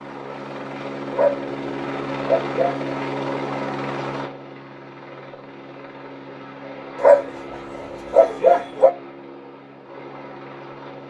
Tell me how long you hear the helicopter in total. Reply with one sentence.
You can hear the helicopter for 11 seconds altogether.